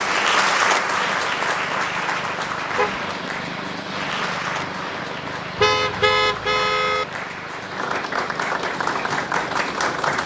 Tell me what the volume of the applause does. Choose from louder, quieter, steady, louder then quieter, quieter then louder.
quieter then louder.